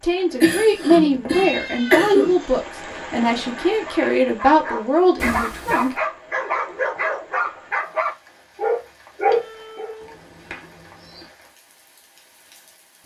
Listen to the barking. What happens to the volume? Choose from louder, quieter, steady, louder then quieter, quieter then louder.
louder.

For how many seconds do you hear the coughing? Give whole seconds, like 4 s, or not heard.
2 s.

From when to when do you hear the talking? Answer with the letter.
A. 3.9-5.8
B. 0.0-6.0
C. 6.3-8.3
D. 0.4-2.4
B.